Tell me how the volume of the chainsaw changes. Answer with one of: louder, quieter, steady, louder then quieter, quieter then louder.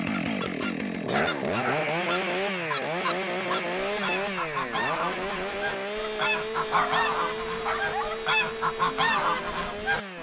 quieter.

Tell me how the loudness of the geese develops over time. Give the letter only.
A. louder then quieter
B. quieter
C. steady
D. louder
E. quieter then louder
D.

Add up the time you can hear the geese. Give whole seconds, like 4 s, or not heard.
10 s.